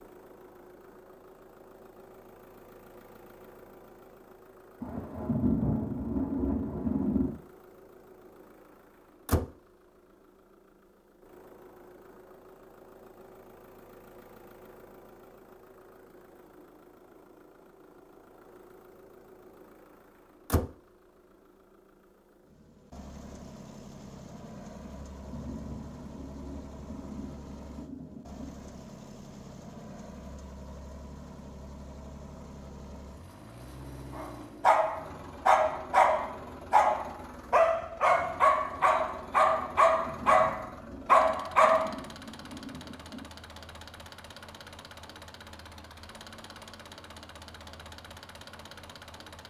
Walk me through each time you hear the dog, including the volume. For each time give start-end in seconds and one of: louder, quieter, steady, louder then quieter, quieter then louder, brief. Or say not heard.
34.1-42.0 steady.